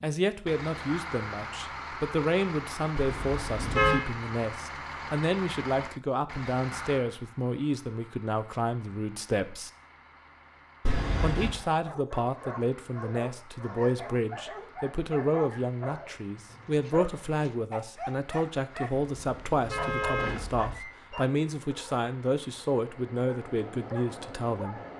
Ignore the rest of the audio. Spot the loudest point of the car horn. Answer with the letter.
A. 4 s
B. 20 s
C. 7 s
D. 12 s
A.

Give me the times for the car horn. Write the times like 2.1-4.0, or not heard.
3.0-4.0, 10.8-11.6, 18.9-20.8.